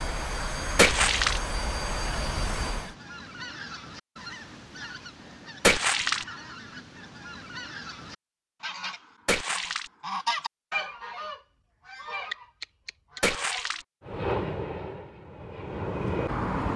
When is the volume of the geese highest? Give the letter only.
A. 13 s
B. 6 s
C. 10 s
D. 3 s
C.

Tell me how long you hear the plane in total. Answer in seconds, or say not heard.
6 s.